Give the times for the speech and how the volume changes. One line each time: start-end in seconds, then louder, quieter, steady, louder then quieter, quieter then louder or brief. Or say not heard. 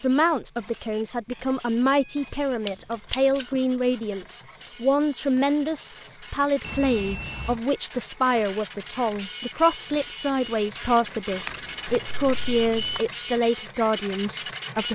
0.0-14.9 steady.